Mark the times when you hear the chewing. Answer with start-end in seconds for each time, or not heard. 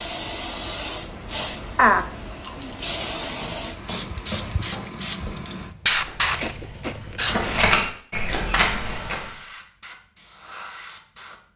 1.8-2.8, 6.2-7.8.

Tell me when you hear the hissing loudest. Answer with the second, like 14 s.
6 s.